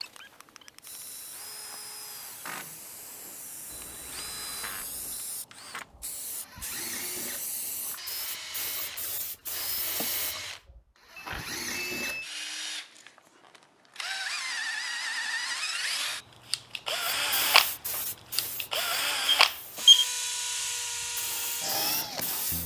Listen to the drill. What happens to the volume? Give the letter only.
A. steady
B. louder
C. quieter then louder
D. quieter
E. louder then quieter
B.